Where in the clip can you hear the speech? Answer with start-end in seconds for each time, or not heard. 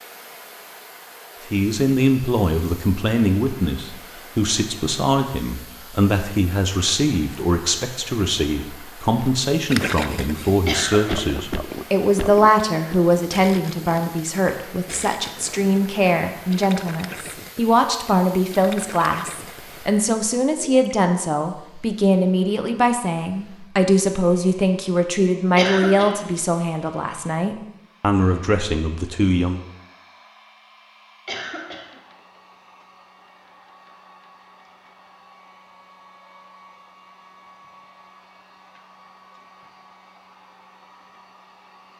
1.5-29.6.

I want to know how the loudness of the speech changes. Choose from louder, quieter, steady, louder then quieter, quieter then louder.
steady.